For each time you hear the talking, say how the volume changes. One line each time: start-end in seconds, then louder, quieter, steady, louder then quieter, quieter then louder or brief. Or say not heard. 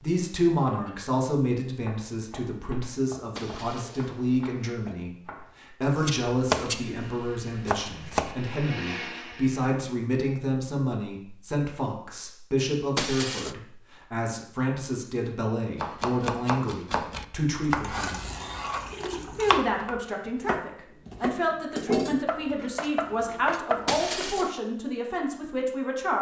0.0-18.2 steady
19.1-26.1 steady.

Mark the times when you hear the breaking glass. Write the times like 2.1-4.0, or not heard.
3.4-5.0, 12.9-13.6, 23.9-24.5.